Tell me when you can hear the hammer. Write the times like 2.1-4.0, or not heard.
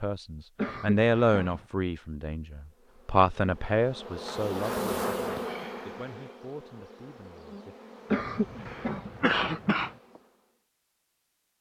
not heard.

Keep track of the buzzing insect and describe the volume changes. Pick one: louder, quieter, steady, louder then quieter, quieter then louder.
louder then quieter.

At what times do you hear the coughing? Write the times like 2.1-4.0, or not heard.
0.6-1.6, 8.1-9.9.